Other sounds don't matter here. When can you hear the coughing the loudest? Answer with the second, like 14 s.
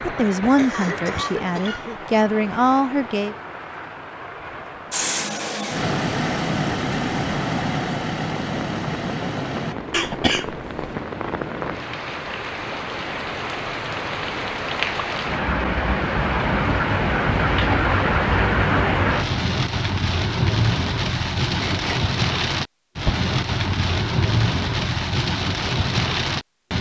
10 s.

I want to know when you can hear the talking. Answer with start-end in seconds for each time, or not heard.
0.0-3.4.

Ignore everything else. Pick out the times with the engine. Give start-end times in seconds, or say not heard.
4.9-9.8.